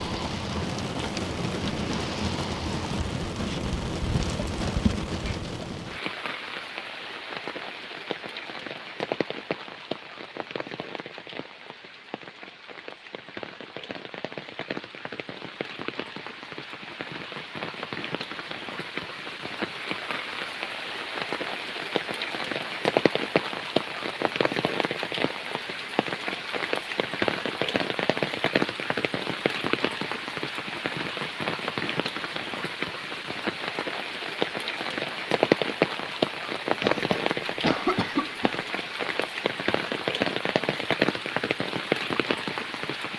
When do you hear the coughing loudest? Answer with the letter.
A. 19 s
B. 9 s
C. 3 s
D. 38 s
D.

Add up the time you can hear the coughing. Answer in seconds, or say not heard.
2 s.